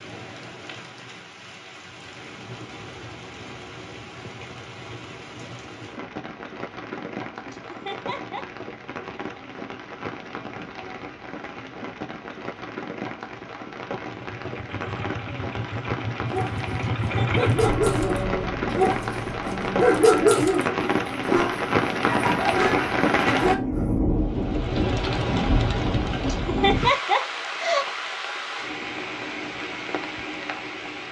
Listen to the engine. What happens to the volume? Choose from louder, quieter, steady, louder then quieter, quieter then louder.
louder then quieter.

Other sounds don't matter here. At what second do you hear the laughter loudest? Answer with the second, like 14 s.
27 s.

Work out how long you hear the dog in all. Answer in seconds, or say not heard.
8 s.